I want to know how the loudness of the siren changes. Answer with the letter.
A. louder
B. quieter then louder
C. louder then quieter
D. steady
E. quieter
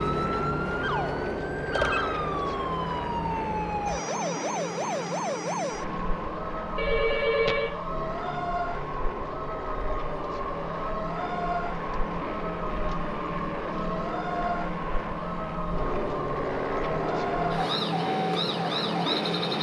D.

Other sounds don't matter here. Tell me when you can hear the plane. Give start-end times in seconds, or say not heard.
0.0-19.5.